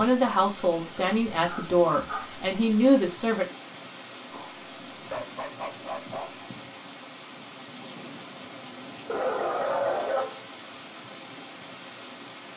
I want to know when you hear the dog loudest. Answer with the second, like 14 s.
10 s.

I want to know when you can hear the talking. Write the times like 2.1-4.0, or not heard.
0.0-3.5.